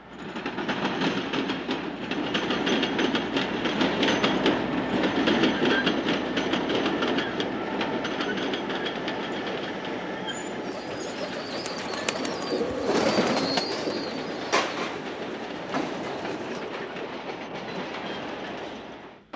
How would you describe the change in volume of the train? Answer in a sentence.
The volume of the train goes down.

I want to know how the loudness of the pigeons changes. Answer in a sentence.
The loudness of the pigeons goes up, then down.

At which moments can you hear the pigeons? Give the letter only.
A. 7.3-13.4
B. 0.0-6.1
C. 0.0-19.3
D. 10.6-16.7
D.